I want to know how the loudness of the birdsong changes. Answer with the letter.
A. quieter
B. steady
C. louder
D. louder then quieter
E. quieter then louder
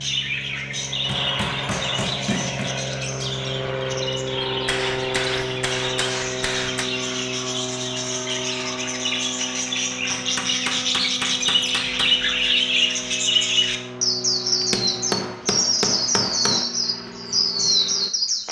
C.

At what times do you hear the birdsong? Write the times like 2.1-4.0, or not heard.
0.0-18.4.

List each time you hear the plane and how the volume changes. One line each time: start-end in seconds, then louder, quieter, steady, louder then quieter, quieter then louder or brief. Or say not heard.
0.0-18.4 quieter.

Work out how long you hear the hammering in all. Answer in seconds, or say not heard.
8 s.